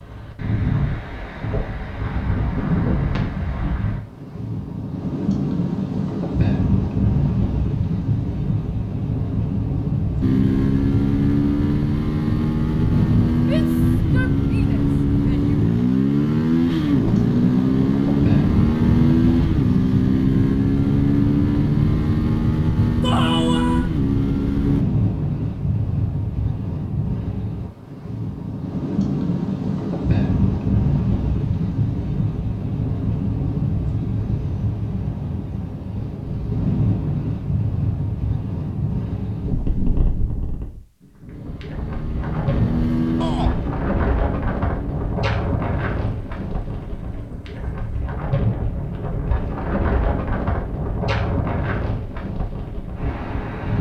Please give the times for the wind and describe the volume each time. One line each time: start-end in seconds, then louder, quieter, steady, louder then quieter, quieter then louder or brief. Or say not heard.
0.0-53.7 steady.